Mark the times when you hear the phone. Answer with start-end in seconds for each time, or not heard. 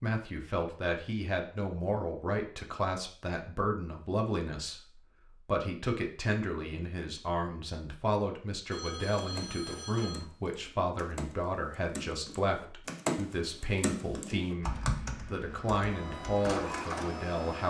8.7-10.3.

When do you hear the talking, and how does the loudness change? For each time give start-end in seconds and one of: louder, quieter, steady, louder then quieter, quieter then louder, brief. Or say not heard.
0.0-17.6 steady.